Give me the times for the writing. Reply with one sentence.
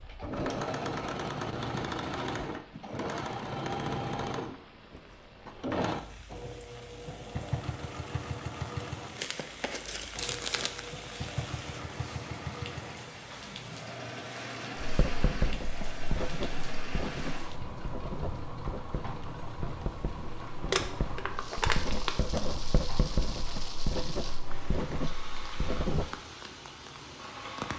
You can hear the writing from 14.8 to 26.1 s.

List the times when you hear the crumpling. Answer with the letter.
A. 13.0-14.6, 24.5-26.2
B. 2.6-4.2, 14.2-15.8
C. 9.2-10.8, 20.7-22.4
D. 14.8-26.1
C.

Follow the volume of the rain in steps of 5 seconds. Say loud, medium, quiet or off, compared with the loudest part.
quiet, medium, loud, loud, loud, loud.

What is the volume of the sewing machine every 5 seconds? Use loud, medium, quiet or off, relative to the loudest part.
loud, loud, medium, medium, medium, medium.